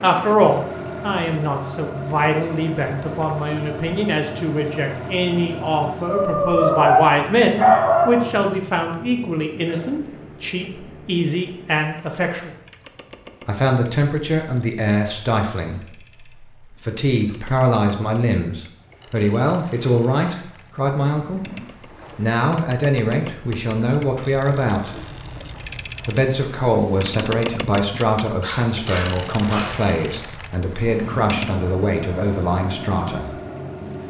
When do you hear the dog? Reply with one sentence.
The dog can be heard from 6.0 to 8.2 s and from 28.4 to 29.8 s.